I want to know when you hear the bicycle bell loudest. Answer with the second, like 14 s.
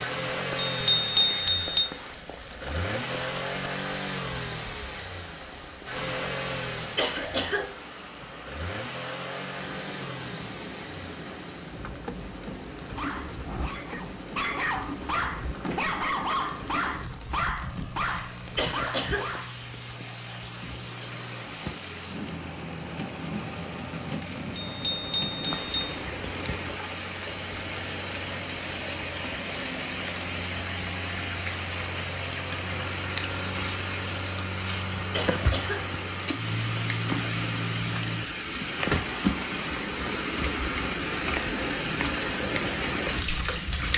1 s.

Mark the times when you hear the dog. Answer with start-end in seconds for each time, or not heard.
12.8-19.6.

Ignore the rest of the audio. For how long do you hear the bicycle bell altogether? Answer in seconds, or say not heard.
3 s.